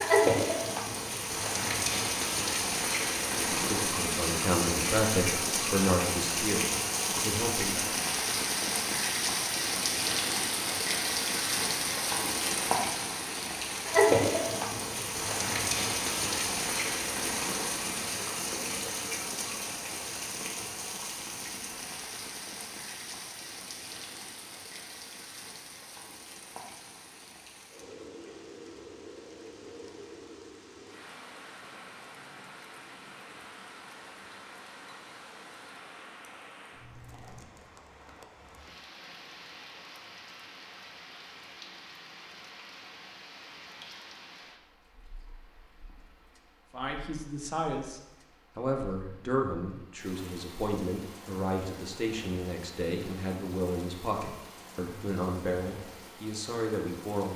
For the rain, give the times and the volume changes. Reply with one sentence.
The rain can be heard from 0.0 to 57.3 s, getting quieter.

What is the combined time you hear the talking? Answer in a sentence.
You can hear the talking for 15 seconds altogether.